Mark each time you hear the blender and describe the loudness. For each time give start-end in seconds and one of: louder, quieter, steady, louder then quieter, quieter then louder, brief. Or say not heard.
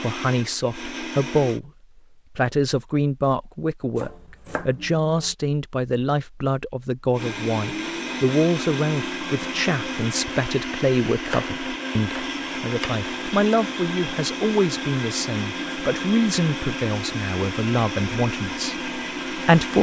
0.0-1.6 brief
7.1-19.7 steady.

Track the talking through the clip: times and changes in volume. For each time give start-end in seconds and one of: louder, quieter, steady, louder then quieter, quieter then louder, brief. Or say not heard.
0.0-1.7 brief
2.4-19.7 steady.